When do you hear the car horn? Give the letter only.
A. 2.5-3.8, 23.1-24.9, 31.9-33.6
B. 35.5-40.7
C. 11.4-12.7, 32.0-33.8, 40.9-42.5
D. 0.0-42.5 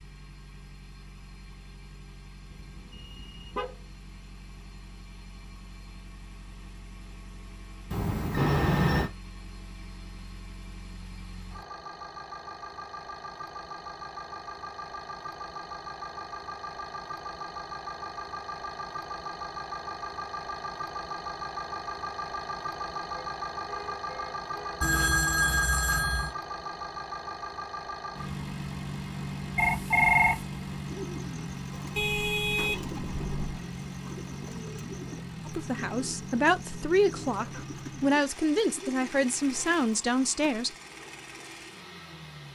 A.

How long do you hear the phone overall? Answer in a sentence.
You can hear the phone for 4 seconds altogether.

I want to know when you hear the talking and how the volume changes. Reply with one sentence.
You can hear the talking from 35.5 to 40.7 s, at a steady volume.